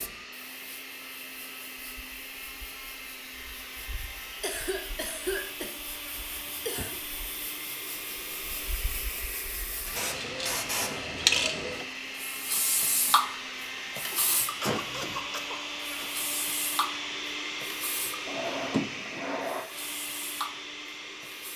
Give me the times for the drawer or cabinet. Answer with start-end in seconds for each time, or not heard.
18.2-19.7.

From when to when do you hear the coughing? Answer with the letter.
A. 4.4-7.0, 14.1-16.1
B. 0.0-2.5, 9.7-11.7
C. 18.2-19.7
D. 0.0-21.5
A.